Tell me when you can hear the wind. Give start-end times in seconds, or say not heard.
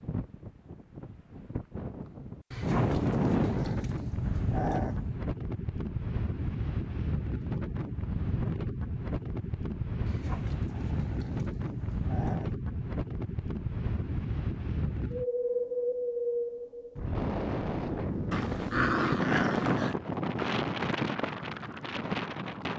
0.0-22.7.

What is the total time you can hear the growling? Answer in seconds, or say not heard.
7 s.